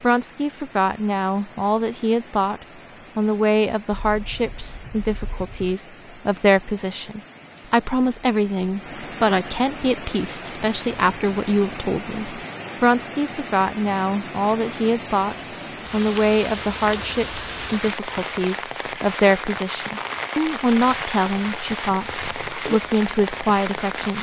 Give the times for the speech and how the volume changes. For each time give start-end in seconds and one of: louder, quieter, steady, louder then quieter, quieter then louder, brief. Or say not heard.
0.0-24.1 steady.